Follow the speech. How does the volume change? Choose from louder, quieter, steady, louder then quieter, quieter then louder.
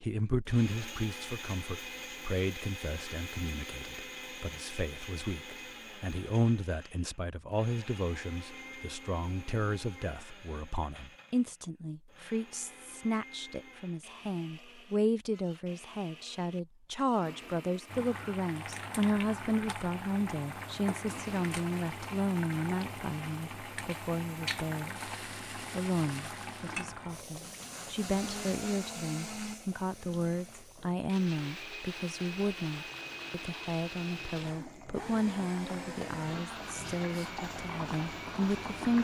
steady.